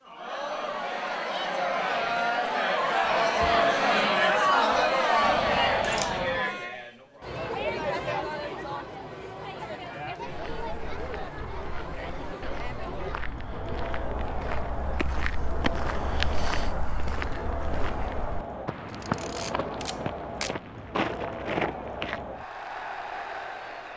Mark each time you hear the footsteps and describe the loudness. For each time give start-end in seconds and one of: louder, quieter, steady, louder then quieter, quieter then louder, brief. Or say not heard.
10.2-22.3 louder.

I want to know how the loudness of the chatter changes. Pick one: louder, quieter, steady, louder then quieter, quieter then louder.
quieter.